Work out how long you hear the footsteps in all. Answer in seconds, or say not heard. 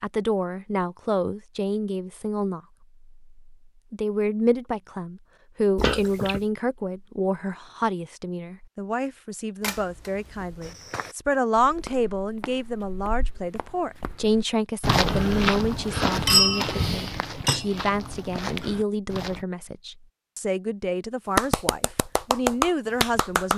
9 s.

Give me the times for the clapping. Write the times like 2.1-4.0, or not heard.
21.4-23.5.